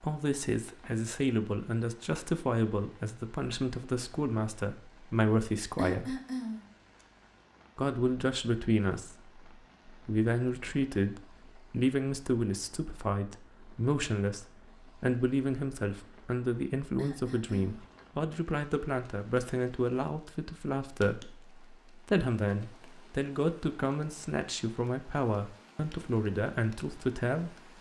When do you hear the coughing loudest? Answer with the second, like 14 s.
6 s.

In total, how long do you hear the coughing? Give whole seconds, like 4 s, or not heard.
2 s.